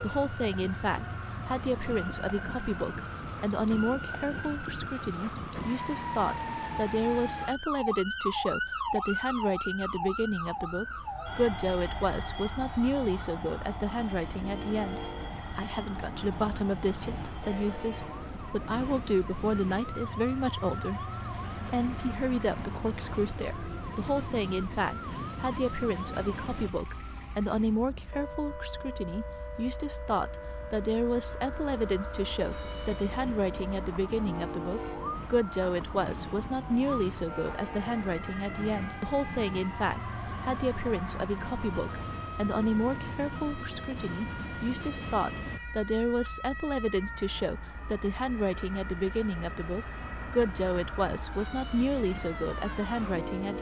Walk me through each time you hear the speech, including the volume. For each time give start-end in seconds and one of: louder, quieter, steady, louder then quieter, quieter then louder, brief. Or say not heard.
0.0-53.5 steady.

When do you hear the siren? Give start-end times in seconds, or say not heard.
0.0-53.5.